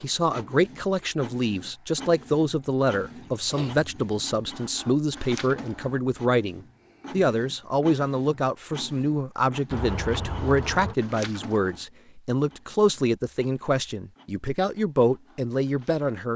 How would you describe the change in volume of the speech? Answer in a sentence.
The loudness of the speech stays about the same.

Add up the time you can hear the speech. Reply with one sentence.
The speech can be heard for 16 seconds in total.